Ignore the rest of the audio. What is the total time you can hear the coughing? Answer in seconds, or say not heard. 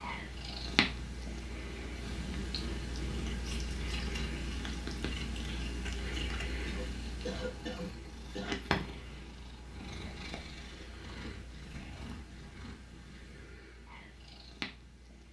2 s.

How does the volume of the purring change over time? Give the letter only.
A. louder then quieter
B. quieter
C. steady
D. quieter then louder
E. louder
B.